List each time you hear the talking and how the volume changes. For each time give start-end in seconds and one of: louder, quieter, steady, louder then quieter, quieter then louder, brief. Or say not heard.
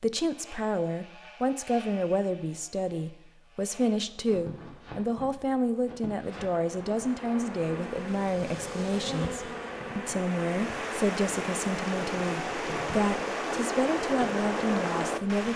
0.0-15.5 steady.